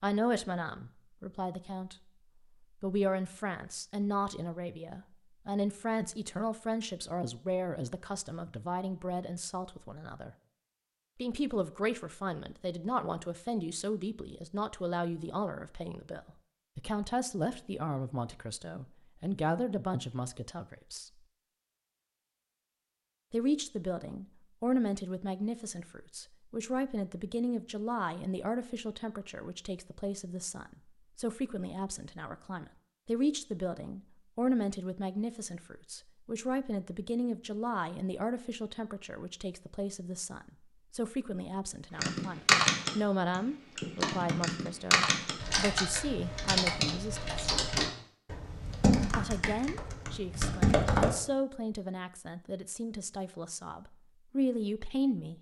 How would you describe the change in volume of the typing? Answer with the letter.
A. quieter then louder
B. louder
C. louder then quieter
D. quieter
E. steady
D.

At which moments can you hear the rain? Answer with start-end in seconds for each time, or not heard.
not heard.